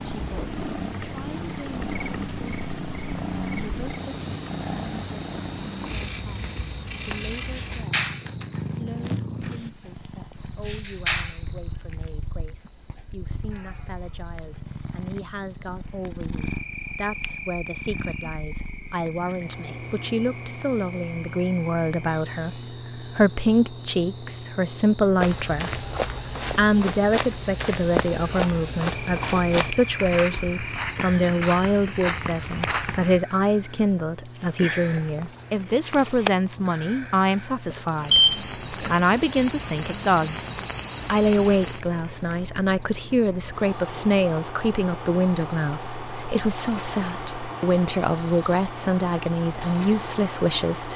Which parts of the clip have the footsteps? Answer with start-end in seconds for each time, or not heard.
25.2-33.2.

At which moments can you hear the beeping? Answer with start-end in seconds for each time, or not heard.
37.7-39.0.